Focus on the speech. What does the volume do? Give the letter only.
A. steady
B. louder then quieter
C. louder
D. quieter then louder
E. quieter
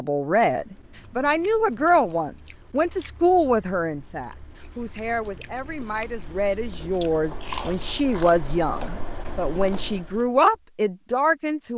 D.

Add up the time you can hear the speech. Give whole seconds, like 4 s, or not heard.
12 s.